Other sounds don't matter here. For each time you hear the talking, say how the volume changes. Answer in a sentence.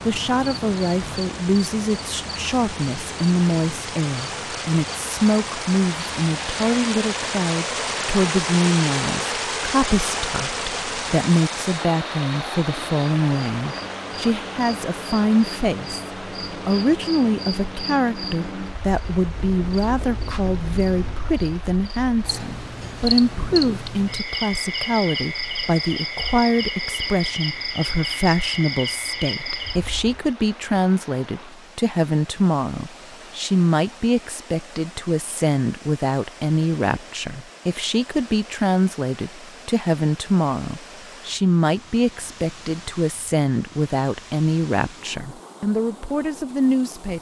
The talking can be heard from 0.0 to 47.1 s, at a steady volume.